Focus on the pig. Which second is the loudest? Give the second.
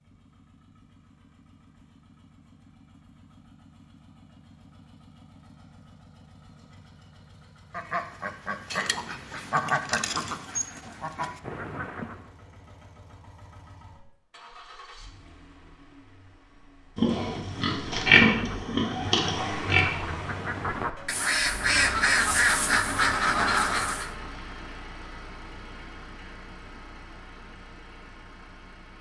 18 s.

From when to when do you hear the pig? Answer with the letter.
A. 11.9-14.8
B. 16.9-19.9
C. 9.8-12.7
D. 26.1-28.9
B.